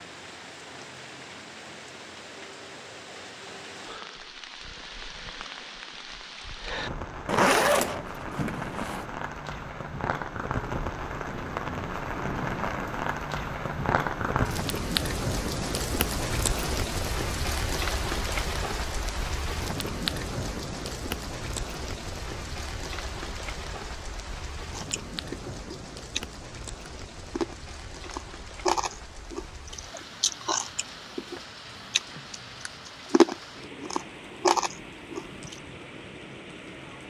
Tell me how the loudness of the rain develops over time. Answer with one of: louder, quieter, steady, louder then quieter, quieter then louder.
louder then quieter.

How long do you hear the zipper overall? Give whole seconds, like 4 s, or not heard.
2 s.